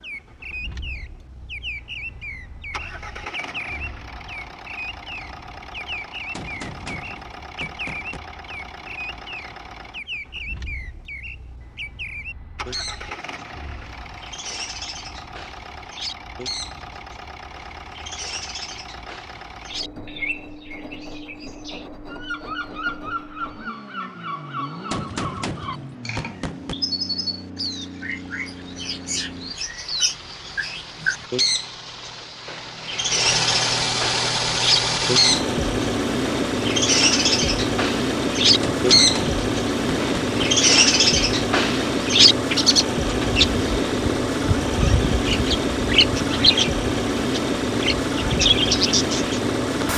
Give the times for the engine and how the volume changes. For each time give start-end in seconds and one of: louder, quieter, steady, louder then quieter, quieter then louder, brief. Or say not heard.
0.0-49.9 louder.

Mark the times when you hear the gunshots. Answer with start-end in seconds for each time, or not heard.
6.3-8.2, 24.9-26.8, 38.6-40.4.